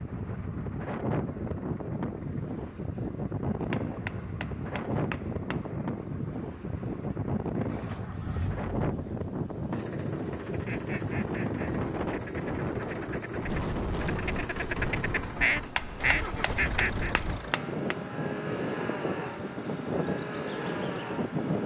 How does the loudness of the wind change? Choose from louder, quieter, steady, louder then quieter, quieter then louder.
steady.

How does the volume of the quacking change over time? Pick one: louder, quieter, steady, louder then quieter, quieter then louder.
louder.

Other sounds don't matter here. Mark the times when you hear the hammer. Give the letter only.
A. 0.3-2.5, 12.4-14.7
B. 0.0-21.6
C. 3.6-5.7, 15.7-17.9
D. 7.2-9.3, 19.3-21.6
C.